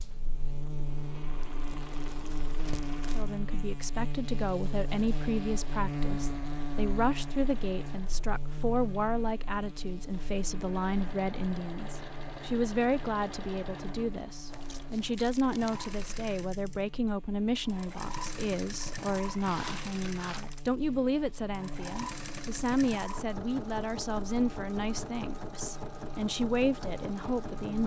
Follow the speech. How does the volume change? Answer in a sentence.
The loudness of the speech stays about the same.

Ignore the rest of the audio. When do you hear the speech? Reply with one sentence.
The speech can be heard from 3.1 to 27.8 s.